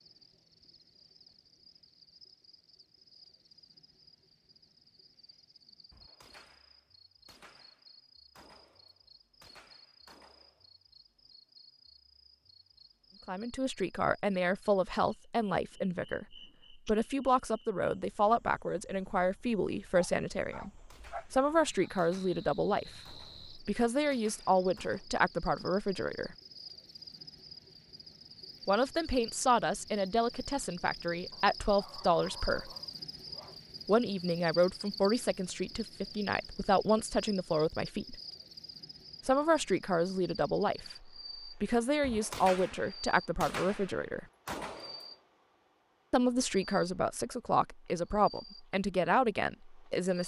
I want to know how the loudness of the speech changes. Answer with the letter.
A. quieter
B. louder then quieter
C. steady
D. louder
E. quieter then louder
C.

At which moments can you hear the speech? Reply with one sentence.
You can hear the speech from 13.2 to 20.7 s, from 21.3 to 26.4 s, from 28.6 to 32.7 s, from 33.9 to 38.1 s, from 39.2 to 44.2 s and from 46.1 to 50.2 s.